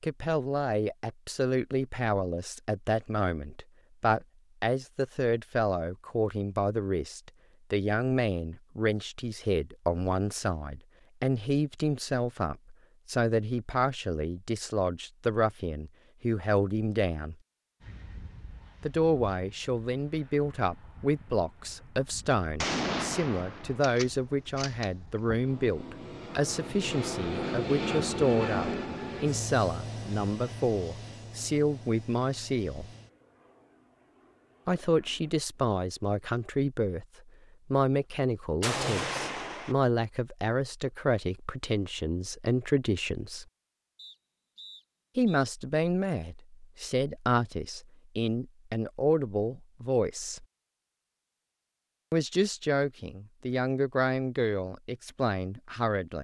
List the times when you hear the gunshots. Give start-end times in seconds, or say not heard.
22.6-25.4, 38.6-39.8.